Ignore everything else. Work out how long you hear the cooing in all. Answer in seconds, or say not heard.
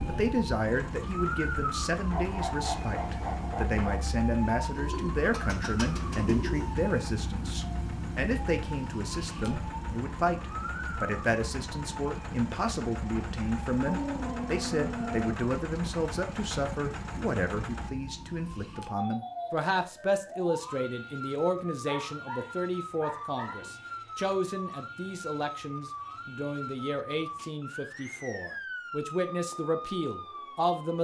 2 s.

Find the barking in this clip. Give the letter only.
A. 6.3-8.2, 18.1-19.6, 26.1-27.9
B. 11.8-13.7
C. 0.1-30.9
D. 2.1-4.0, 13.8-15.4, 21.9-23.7
D.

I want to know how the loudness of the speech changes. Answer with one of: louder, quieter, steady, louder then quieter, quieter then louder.
steady.